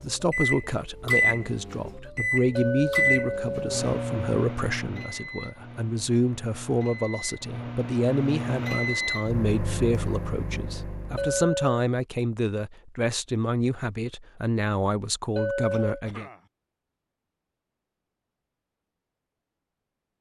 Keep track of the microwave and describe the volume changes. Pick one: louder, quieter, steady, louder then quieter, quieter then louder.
quieter then louder.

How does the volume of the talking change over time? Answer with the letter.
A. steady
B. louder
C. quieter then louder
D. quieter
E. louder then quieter
A.